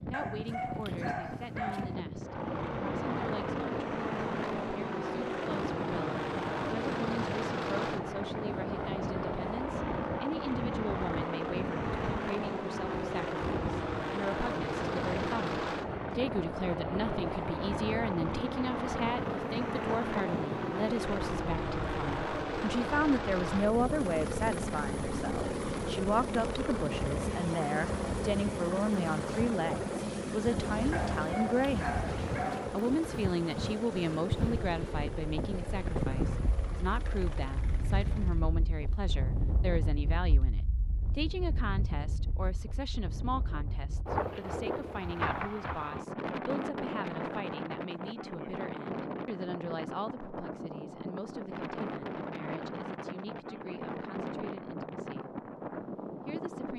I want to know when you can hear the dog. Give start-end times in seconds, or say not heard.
0.1-1.9, 30.9-32.8.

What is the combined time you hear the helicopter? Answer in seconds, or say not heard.
36 s.